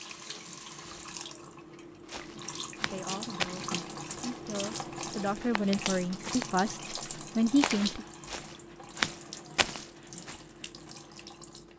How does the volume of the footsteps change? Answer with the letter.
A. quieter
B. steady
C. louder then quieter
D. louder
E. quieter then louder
E.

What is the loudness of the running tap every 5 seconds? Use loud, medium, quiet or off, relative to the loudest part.
loud, loud, medium.